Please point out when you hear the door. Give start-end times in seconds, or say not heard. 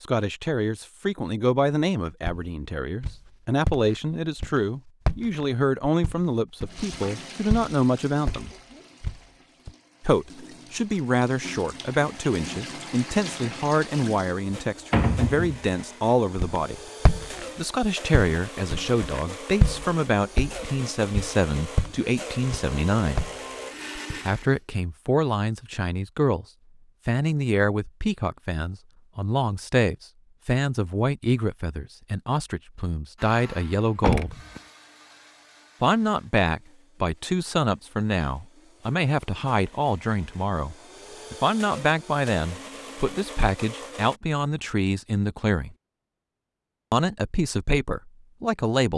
14.9-15.7, 34.0-34.6.